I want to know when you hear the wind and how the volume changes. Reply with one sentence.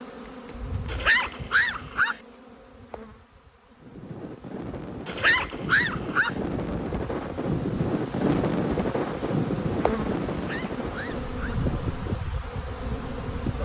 The wind can be heard from 3.8 to 13.3 s, getting louder then quieter.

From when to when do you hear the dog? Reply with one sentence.
The dog can be heard from 0.8 to 2.1 s, from 5.0 to 6.3 s and from 10.3 to 11.6 s.